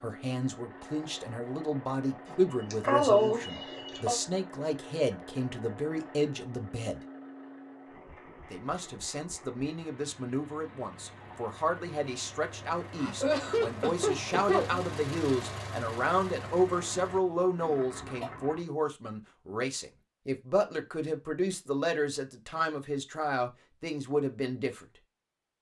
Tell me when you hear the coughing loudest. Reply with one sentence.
The volume of the coughing peaks at 3 seconds.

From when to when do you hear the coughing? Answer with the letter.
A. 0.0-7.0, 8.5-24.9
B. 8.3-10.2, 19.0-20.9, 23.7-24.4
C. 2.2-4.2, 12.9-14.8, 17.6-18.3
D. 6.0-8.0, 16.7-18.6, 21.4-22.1
C.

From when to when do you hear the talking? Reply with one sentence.
You can hear the talking from 0.0 to 7.0 s and from 8.5 to 24.9 s.